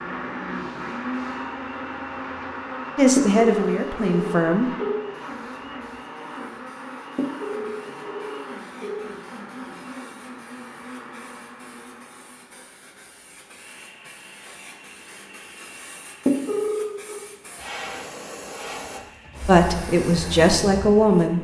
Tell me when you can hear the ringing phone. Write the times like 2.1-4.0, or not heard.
3.1-5.0, 7.2-9.1, 16.2-17.2.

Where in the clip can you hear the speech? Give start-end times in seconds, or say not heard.
3.0-4.7, 19.4-21.3.